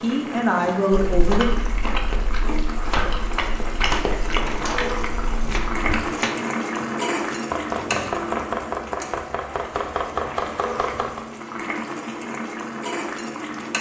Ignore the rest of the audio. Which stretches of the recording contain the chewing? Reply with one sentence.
You can hear the chewing from 0.9 to 6.0 s.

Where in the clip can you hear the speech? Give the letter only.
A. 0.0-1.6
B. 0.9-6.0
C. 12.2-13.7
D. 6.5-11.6
A.